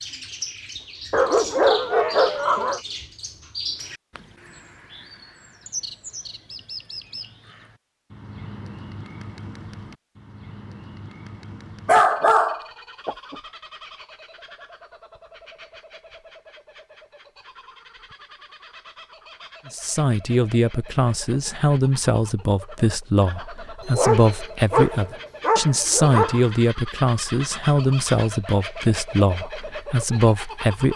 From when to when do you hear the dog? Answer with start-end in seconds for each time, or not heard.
1.1-2.8, 11.8-13.3, 23.9-26.4.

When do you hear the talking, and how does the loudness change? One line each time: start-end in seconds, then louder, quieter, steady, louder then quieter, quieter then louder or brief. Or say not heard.
19.6-30.9 steady.